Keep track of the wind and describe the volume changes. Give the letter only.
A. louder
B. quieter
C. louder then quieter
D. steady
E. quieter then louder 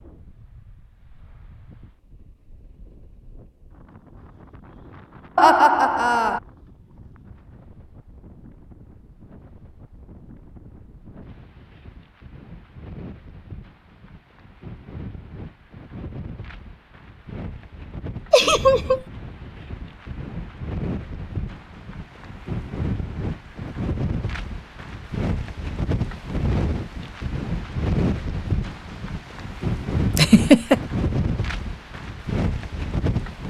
A.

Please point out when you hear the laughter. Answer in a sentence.
The laughter can be heard from 5.3 to 6.4 s, from 18.3 to 19.0 s and from 30.1 to 30.8 s.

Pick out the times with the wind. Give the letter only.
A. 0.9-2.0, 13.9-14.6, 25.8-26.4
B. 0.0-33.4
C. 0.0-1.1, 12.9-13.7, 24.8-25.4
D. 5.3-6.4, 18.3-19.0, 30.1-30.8
B.